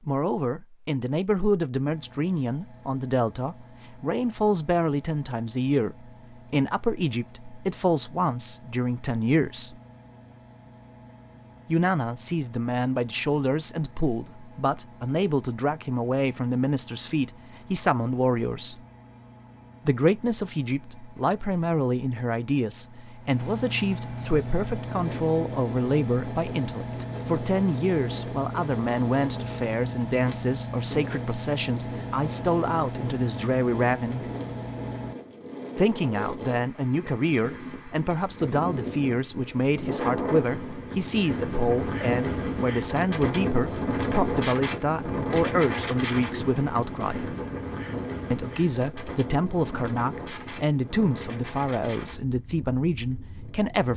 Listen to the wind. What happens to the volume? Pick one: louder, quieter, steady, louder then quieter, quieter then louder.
louder then quieter.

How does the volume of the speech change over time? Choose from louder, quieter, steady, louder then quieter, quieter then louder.
steady.